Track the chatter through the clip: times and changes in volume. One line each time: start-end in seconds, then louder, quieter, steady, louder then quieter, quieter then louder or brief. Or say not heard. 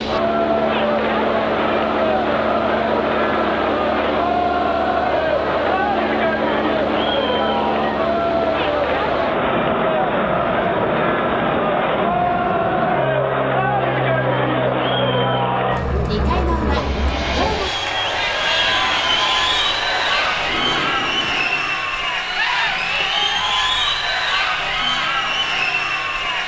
0.0-26.4 steady.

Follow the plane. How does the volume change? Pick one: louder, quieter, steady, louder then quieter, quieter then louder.
steady.